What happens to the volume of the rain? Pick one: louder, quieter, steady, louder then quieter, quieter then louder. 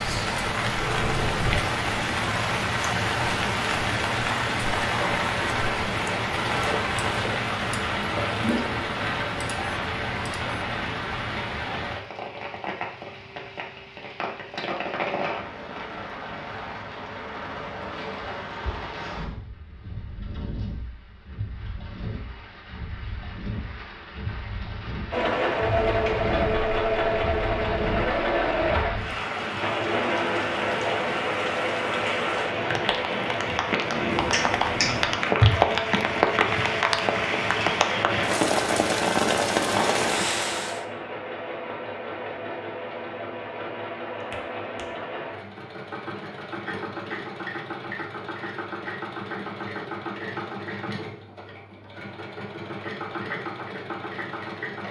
quieter then louder.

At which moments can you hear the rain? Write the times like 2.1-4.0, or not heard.
0.0-40.9.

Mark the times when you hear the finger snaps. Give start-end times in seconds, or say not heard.
0.8-1.8, 34.1-35.0, 44.3-44.9.